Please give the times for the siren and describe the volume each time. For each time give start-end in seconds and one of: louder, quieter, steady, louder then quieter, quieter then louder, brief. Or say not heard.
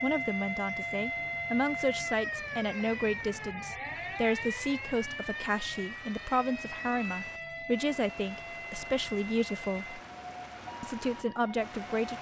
0.0-12.1 quieter.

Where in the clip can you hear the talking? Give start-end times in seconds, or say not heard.
0.0-10.0, 10.8-12.1.